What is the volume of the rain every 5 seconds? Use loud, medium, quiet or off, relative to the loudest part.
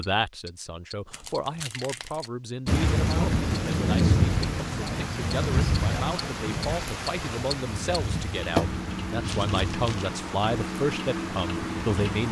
loud, medium, quiet.